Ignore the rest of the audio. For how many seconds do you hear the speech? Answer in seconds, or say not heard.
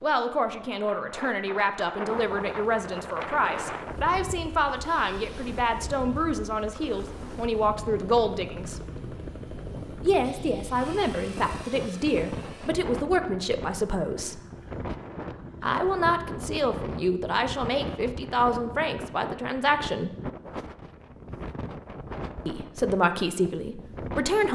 20 s.